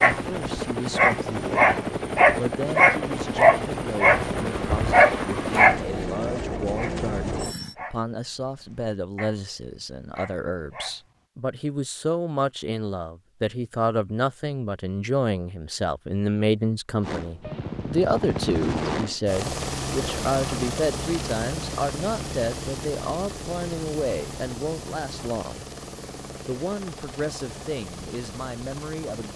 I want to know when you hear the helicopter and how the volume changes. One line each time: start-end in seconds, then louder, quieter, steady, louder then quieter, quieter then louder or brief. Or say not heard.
0.0-7.8 steady
17.0-29.3 quieter.